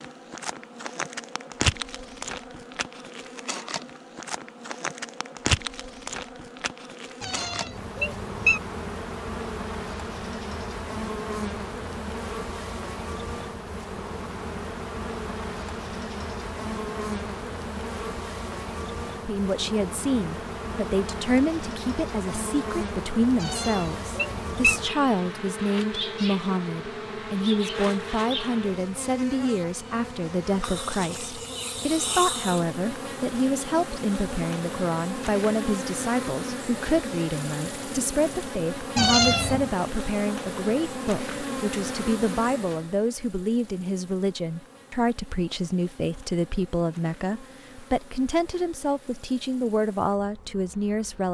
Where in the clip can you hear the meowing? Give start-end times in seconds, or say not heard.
7.2-8.6, 23.4-24.8, 39.0-39.8.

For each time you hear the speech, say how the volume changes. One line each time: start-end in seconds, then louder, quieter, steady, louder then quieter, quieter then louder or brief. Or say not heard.
19.2-51.2 steady.